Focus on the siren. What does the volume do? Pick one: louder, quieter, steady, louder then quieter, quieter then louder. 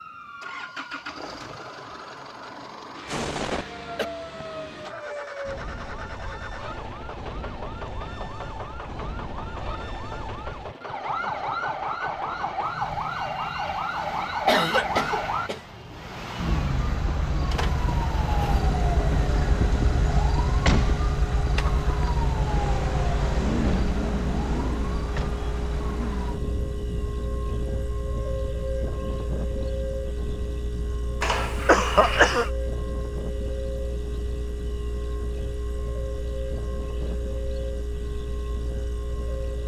louder then quieter.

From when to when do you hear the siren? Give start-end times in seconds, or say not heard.
0.0-39.6.